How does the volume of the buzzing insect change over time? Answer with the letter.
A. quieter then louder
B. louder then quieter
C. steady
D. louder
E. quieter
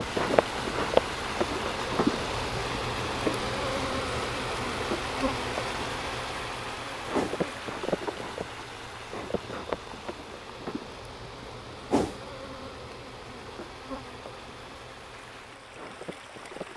E.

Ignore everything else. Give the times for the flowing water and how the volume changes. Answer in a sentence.
The flowing water can be heard from 0.0 to 16.7 s, getting quieter.